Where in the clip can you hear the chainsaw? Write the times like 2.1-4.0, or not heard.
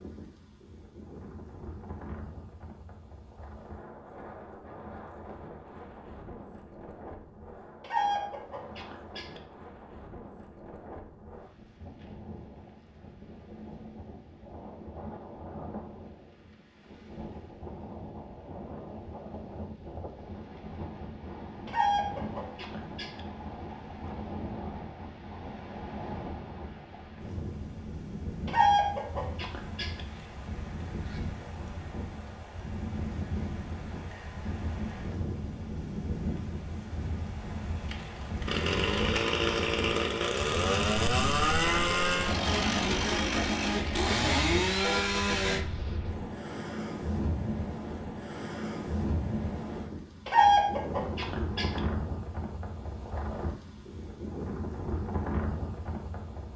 37.9-45.6.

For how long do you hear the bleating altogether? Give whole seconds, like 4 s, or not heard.
not heard.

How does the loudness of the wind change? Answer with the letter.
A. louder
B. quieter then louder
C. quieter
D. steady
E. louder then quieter
A.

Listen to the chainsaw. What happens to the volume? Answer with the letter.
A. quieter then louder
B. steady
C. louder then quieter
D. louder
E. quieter
B.